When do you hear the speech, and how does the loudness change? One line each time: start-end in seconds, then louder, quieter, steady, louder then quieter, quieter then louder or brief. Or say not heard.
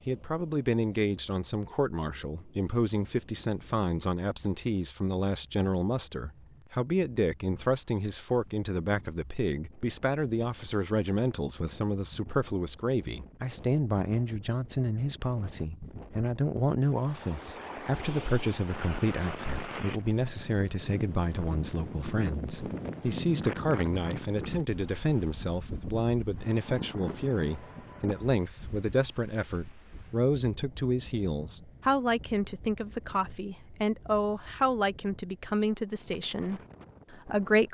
0.1-37.7 steady.